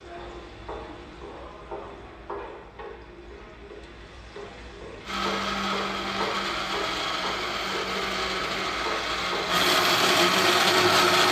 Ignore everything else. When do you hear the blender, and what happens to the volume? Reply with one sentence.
You can hear the blender from 5.0 to 11.2 s, getting louder.